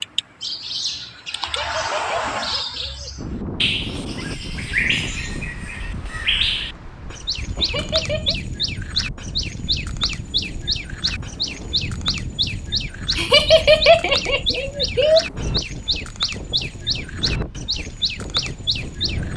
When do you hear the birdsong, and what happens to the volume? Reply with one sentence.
You can hear the birdsong from 0.0 to 19.3 s, at a steady volume.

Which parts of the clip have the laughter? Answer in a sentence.
You can hear the laughter from 1.4 to 3.2 s, from 7.5 to 8.3 s and from 13.2 to 15.2 s.